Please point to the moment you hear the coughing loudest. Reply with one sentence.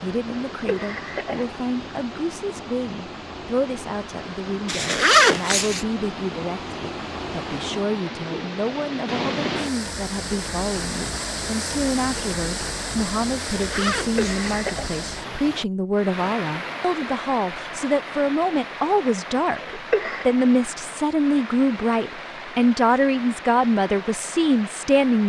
The volume of the coughing peaks at 20 seconds.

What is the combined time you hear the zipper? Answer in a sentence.
The zipper can be heard for 2 seconds in total.